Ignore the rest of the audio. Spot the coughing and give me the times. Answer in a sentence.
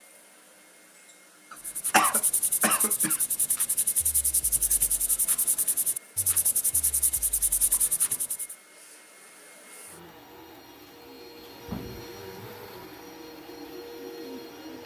The coughing can be heard from 1.5 to 3.2 s.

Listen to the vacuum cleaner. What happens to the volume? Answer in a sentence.
The loudness of the vacuum cleaner goes up.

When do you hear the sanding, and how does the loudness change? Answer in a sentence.
You can hear the sanding from 1.6 to 8.6 s, at a steady volume.